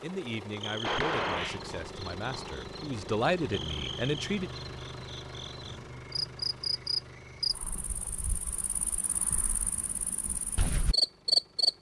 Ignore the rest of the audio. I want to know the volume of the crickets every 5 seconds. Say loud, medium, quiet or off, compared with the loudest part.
quiet, medium, loud.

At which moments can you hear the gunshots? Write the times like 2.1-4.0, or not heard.
0.8-1.6.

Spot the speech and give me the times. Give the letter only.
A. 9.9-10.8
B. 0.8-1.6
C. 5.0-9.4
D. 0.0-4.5
D.